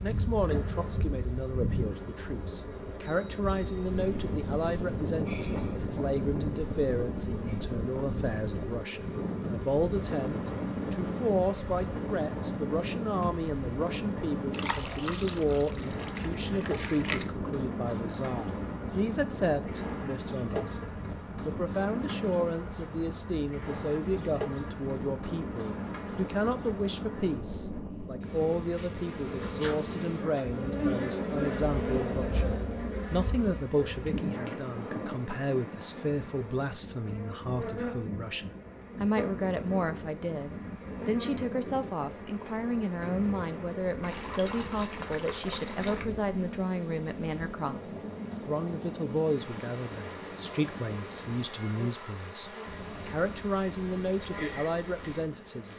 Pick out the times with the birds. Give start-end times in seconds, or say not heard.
not heard.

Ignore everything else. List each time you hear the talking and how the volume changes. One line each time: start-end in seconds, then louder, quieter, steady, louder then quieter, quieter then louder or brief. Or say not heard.
0.0-55.7 steady.